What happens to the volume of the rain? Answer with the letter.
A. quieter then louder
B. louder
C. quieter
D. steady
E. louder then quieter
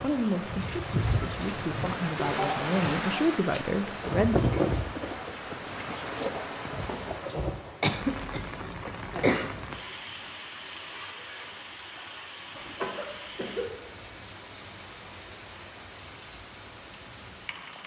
C.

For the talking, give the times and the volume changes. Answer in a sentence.
The talking can be heard from 0.0 to 4.3 s, getting louder.